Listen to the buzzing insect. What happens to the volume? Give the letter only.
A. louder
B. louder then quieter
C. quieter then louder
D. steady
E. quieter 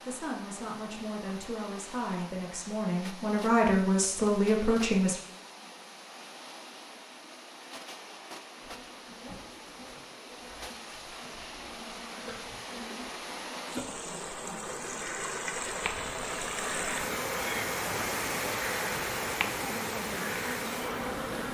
A.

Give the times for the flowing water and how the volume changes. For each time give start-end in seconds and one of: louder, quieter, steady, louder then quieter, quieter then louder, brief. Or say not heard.
0.0-21.5 louder.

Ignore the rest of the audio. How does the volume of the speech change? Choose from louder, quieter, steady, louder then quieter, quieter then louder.
louder.